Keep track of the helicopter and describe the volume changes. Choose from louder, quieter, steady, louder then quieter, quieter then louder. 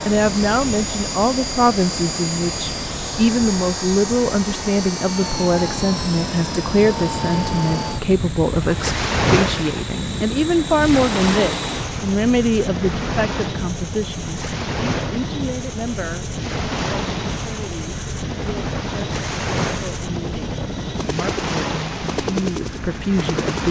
steady.